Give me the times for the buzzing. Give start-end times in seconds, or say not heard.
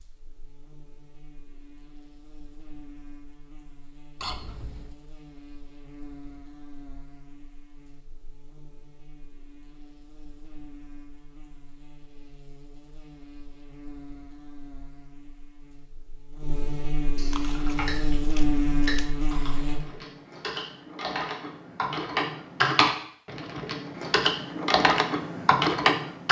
0.0-19.8.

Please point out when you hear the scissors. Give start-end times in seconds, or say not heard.
4.2-5.0, 17.1-19.2.